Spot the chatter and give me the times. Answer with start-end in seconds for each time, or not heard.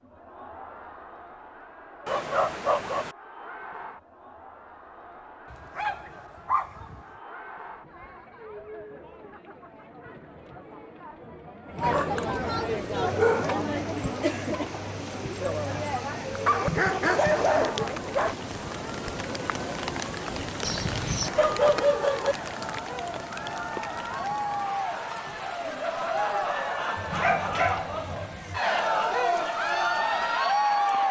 0.0-31.0.